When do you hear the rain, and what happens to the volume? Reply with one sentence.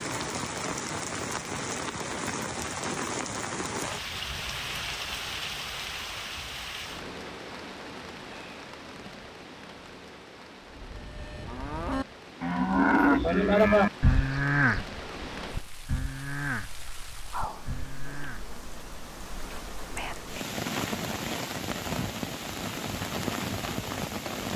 You can hear the rain from 0.0 to 24.5 s, getting quieter then louder.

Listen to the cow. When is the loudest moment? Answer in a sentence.
The volume of the cow peaks at 14 seconds.